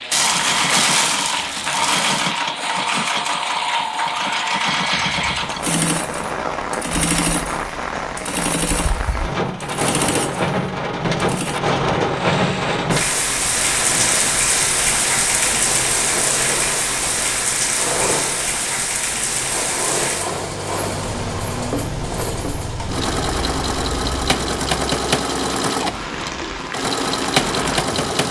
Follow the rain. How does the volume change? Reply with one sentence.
The loudness of the rain goes up, then down.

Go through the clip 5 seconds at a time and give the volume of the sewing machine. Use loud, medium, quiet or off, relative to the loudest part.
loud, loud, medium, medium, loud, loud.